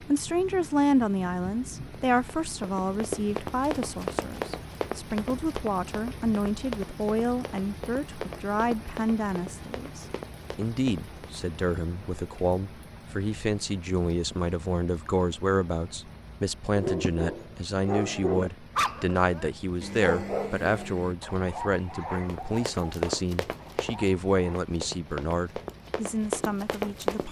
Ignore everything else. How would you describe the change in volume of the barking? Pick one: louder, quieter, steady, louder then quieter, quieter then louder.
quieter.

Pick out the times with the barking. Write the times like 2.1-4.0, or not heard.
16.8-24.7.